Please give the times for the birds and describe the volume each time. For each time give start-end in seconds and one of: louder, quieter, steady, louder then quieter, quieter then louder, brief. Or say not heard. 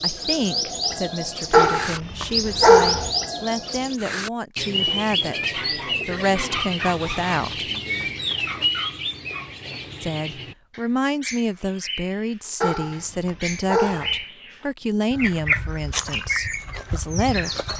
0.0-17.7 quieter then louder.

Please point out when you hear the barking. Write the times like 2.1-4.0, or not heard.
1.5-3.1, 12.6-14.2.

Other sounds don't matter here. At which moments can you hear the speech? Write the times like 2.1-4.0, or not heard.
0.0-7.7, 10.0-17.5.